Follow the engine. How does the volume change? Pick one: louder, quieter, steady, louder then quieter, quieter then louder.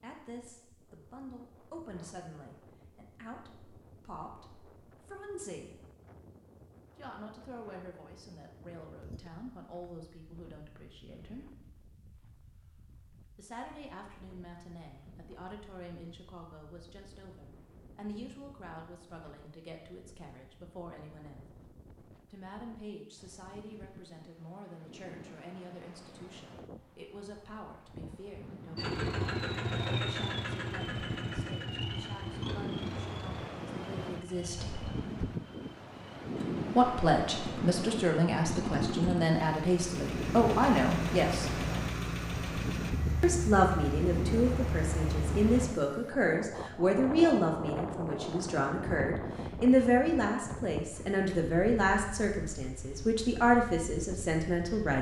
quieter then louder.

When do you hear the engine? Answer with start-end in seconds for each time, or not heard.
28.8-45.7.